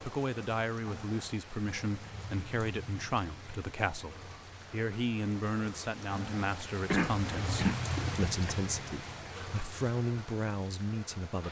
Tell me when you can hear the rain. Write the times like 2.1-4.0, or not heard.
0.0-11.4.